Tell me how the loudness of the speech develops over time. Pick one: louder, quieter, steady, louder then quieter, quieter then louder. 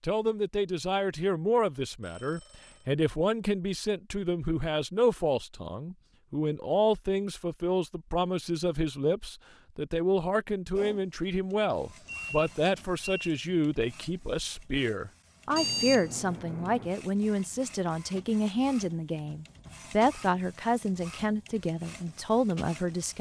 steady.